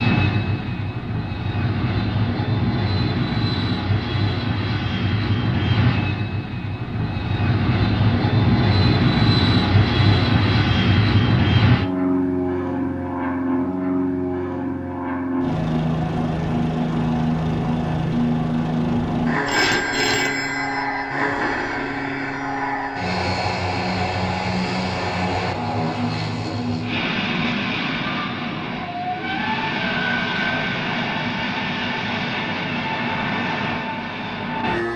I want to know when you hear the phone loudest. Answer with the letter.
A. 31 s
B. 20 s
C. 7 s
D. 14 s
B.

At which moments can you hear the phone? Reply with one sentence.
The phone can be heard from 19.4 to 21.1 s.